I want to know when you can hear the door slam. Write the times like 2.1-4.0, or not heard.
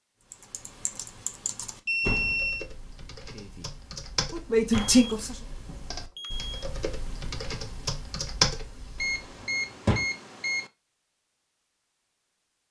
2.0-2.5, 4.6-5.9, 9.4-10.1.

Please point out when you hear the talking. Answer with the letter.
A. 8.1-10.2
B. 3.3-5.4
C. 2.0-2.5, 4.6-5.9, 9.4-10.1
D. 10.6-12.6
B.